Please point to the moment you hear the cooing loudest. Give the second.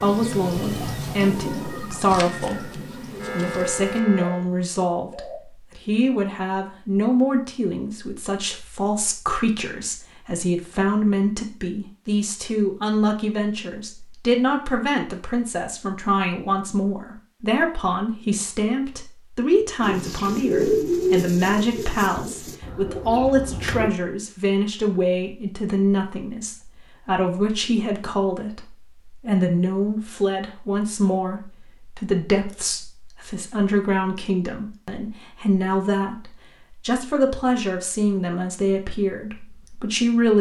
21 s.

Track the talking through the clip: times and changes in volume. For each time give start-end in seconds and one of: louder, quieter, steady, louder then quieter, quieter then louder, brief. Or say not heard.
0.0-40.3 steady.